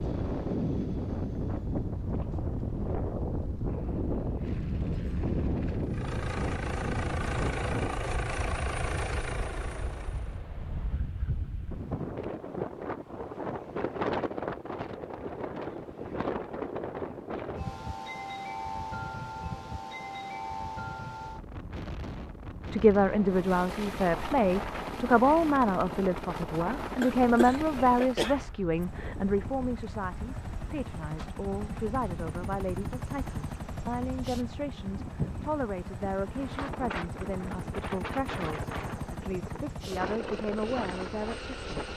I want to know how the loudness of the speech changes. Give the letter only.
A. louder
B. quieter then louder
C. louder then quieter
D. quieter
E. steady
D.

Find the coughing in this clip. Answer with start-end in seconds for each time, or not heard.
27.0-28.4.